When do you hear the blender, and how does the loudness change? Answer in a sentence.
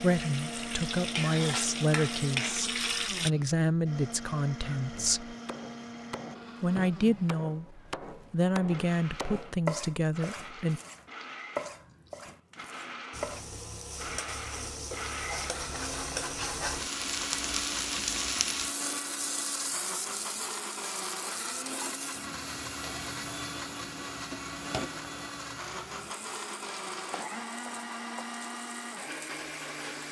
You can hear the blender from 0.0 to 30.0 s, getting quieter then louder.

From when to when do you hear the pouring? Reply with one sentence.
You can't hear the pouring here.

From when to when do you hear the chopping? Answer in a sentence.
The chopping can be heard from 4.6 to 13.4 s.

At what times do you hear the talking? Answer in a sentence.
The talking can be heard from 0.0 to 5.3 s and from 6.6 to 10.8 s.